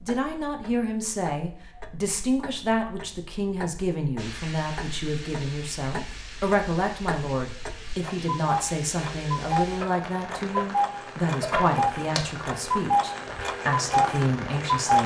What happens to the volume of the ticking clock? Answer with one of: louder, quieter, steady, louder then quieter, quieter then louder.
louder.